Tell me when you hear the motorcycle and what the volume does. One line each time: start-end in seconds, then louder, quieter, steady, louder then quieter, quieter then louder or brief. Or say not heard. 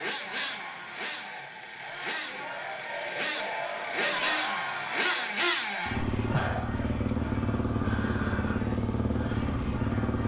0.0-10.2 louder.